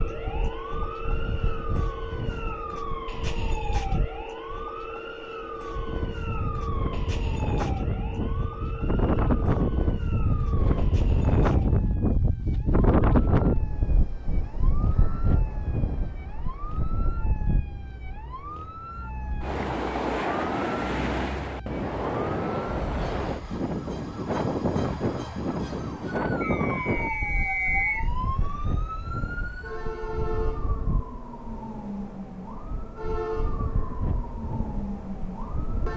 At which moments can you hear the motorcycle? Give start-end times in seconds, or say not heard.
not heard.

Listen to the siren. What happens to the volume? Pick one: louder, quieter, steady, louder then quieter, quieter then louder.
quieter then louder.